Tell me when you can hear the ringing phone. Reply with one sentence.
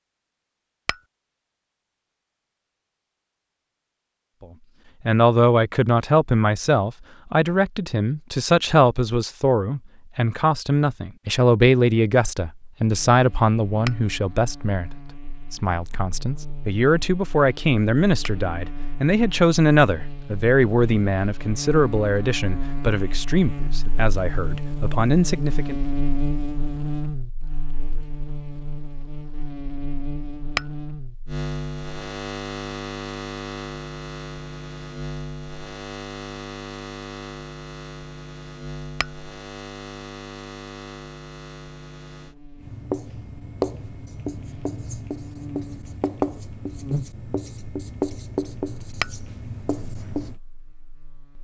The ringing phone can't be heard in this clip.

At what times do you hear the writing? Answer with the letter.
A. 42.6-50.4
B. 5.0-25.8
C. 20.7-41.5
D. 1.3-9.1
A.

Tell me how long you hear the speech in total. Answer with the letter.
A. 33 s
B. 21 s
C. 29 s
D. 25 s
B.